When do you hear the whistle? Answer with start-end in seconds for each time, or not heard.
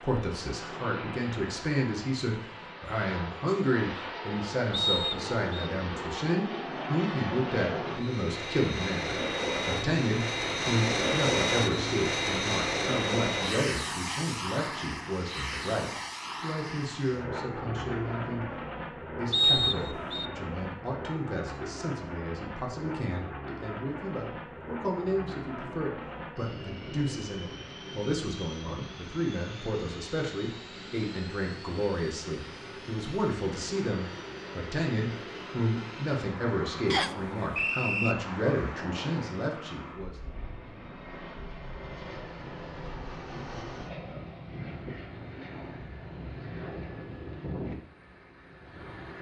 4.7-5.7, 19.3-20.3, 36.9-38.1.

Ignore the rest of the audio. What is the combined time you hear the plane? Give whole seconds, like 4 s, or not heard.
49 s.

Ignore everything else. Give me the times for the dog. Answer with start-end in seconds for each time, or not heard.
not heard.